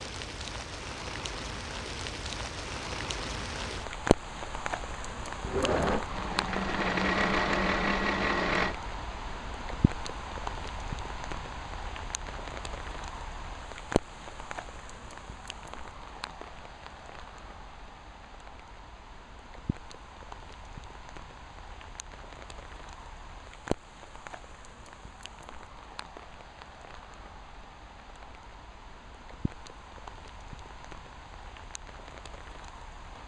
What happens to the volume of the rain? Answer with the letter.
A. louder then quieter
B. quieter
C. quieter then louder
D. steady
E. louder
B.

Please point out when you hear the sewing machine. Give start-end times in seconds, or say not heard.
5.5-8.8.